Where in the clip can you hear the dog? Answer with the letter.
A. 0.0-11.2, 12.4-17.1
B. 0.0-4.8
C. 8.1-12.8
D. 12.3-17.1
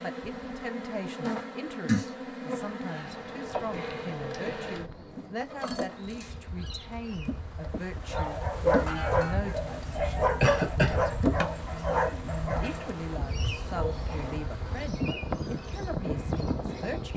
C.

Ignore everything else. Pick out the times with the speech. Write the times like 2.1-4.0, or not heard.
0.0-11.2, 12.4-17.1.